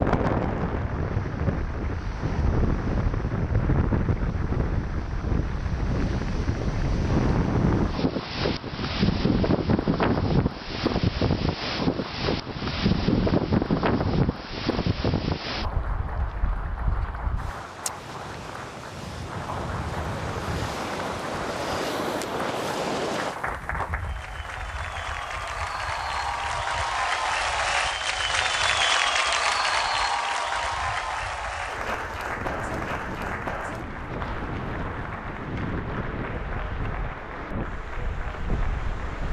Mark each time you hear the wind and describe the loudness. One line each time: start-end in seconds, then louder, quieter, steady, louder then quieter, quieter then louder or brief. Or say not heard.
0.0-39.2 quieter then louder.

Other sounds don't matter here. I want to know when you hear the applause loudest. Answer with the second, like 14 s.
29 s.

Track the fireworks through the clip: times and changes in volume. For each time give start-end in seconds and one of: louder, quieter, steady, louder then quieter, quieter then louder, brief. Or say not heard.
not heard.